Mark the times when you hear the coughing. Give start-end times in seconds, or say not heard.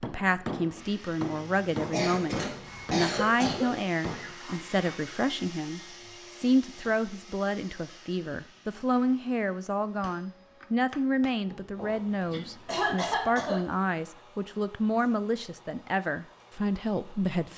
1.9-3.7, 11.4-13.7.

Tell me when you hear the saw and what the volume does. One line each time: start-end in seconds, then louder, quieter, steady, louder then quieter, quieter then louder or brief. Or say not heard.
not heard.